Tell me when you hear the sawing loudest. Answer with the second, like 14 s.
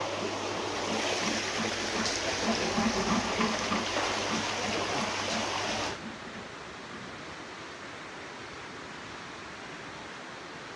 3 s.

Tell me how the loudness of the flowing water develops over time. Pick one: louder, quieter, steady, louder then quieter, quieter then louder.
quieter.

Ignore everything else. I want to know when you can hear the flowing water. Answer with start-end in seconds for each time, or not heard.
0.0-10.7.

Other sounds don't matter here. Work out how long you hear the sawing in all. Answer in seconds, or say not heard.
7 s.